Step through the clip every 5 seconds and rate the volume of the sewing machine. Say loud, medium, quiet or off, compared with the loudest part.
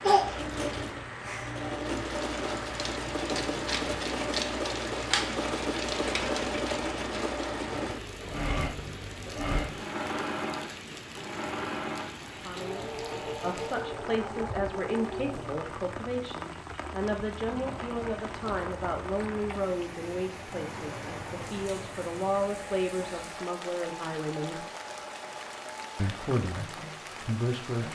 loud, loud, medium, medium, quiet, quiet.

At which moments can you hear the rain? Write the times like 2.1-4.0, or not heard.
0.0-27.9.